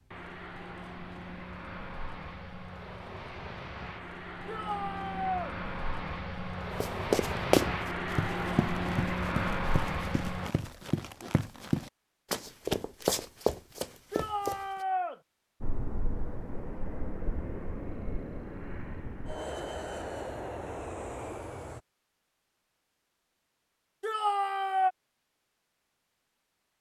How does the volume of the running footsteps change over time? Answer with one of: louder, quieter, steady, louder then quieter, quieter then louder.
quieter then louder.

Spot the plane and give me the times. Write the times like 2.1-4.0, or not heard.
0.1-10.5, 15.6-21.8.